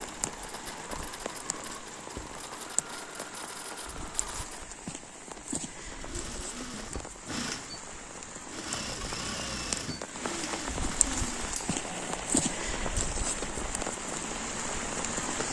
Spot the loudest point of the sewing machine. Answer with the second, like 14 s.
9 s.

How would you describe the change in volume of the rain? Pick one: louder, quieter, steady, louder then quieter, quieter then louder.
louder.